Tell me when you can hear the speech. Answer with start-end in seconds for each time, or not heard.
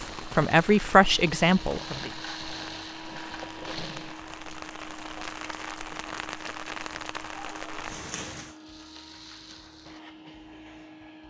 0.0-2.1.